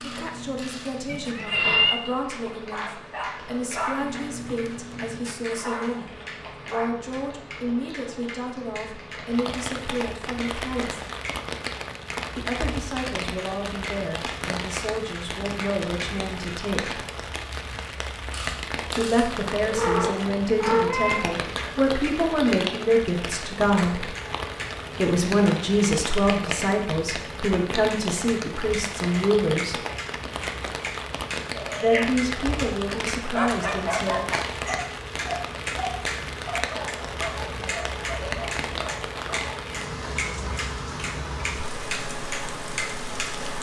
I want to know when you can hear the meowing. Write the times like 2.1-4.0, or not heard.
1.1-2.0, 19.6-21.3, 31.6-32.1.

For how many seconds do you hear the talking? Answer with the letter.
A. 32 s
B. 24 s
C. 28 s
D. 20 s
C.